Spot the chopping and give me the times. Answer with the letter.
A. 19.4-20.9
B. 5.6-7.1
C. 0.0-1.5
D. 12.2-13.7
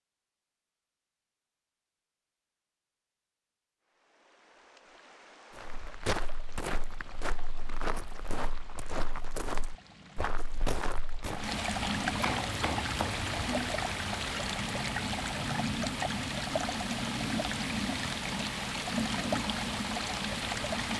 D.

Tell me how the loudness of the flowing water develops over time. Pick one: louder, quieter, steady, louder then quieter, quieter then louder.
louder.